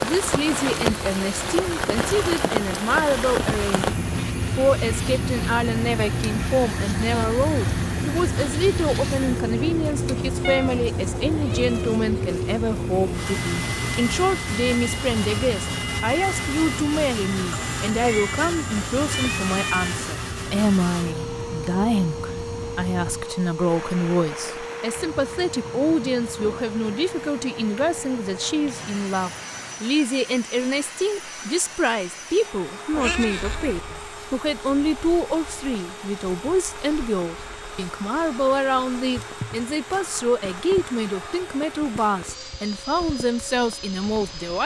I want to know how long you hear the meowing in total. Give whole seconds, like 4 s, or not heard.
5 s.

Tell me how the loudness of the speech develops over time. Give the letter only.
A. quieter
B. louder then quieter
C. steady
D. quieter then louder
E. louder
C.